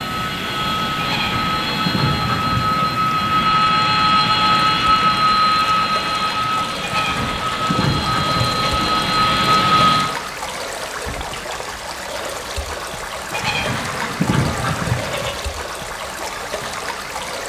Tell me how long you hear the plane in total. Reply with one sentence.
The plane can be heard for 10 seconds in total.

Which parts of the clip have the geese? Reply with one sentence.
The geese can be heard from 0.9 to 3.0 s, from 6.8 to 8.6 s and from 13.3 to 15.3 s.